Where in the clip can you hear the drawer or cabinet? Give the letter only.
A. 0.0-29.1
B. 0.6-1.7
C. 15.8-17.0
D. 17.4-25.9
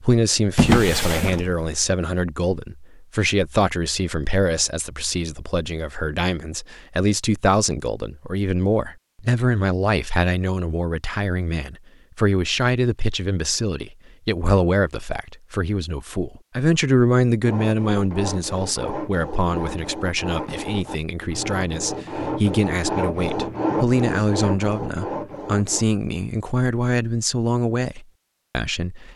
B.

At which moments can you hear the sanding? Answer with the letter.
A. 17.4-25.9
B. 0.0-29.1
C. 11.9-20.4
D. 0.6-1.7
A.